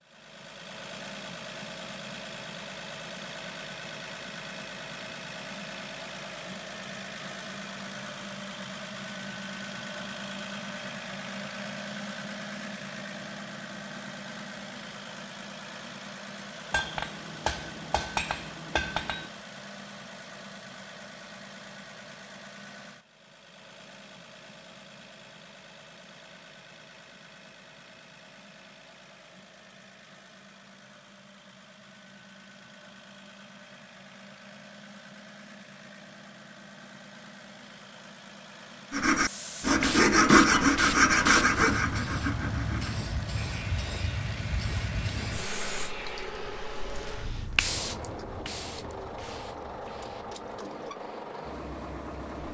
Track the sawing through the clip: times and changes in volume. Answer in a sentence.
The sawing can be heard from 38.9 to 47.5 s, getting quieter.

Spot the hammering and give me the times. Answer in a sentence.
The hammering can be heard from 16.7 to 19.3 s.